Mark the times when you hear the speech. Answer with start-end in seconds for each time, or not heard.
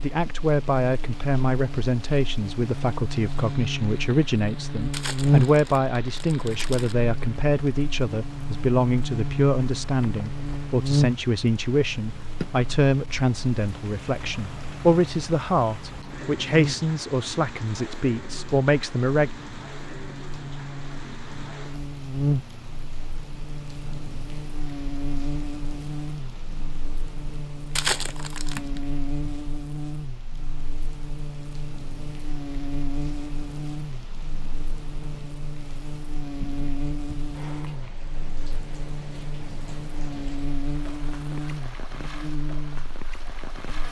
0.0-19.3.